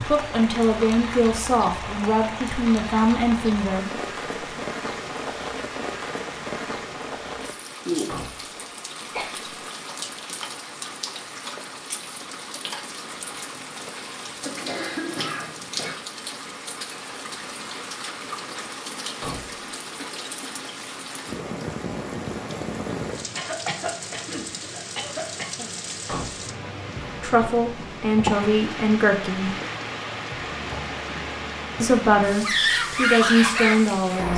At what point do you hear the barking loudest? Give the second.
33 s.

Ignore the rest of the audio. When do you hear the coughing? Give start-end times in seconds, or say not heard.
9.1-9.5, 14.4-15.9, 23.3-25.7.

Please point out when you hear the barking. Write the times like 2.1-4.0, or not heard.
32.4-34.3.